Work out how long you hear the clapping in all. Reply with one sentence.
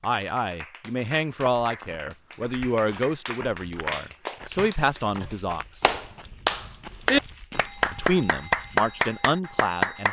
The clapping can be heard for 10 seconds in total.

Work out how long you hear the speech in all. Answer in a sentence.
The speech can be heard for 8 seconds in total.